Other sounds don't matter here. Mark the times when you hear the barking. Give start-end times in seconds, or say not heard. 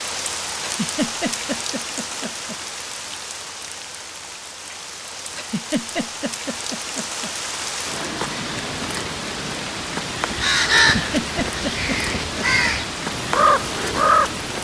not heard.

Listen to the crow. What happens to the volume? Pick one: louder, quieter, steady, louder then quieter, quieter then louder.
quieter then louder.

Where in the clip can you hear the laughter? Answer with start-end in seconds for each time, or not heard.
0.6-2.5, 5.3-7.3, 10.9-12.7.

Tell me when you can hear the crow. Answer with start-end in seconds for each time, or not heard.
10.3-14.6.